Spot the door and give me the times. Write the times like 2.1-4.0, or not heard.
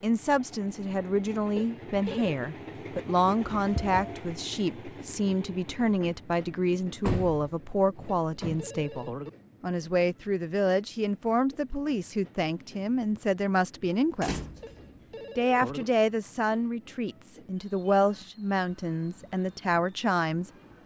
3.5-4.0, 7.0-8.8, 14.2-14.8.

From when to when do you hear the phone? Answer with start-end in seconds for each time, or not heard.
1.6-2.4, 8.1-9.3, 14.6-15.8.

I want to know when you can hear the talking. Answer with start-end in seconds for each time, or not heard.
0.0-14.4, 15.3-20.5.